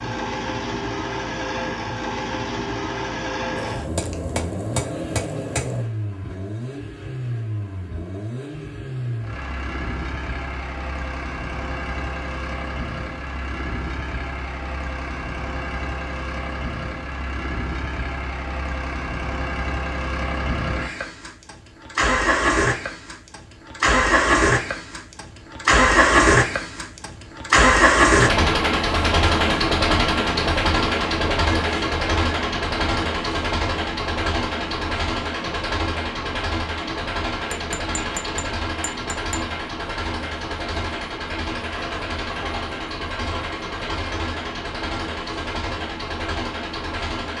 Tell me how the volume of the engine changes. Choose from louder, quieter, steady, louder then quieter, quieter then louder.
louder then quieter.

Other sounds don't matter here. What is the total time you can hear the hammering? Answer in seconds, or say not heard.
4 s.